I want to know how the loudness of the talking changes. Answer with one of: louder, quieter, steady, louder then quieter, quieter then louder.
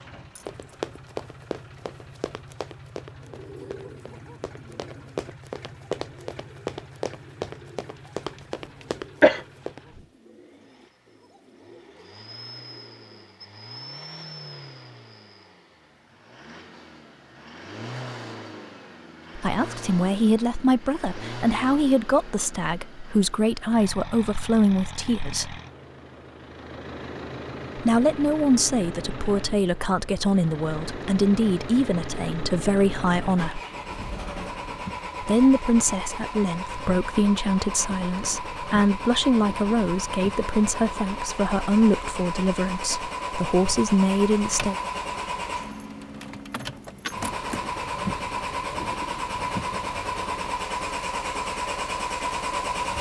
steady.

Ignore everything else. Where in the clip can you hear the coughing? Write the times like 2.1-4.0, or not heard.
8.3-9.4.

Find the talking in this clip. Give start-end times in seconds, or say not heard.
19.4-25.6, 27.8-33.6, 35.2-44.8.